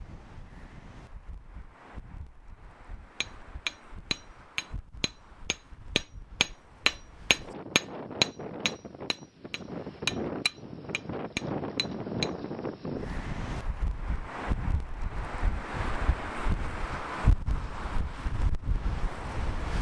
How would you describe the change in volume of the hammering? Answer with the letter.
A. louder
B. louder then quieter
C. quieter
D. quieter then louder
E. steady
B.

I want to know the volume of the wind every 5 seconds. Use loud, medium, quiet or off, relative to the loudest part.
quiet, medium, loud, loud.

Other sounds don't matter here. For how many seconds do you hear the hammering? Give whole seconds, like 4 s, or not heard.
9 s.